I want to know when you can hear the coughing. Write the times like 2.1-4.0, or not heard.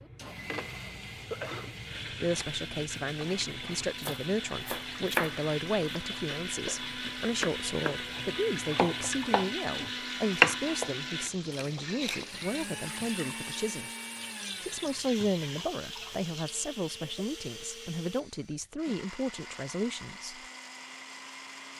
0.7-1.8.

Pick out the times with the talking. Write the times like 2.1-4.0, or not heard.
2.2-13.9, 14.6-20.4.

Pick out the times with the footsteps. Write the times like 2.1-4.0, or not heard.
not heard.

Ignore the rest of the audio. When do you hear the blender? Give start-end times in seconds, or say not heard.
0.0-21.7.